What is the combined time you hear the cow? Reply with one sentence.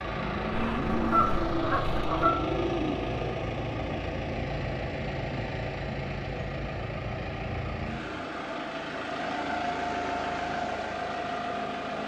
The cow can be heard for 3 seconds in total.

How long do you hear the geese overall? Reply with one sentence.
You can hear the geese for 2 seconds altogether.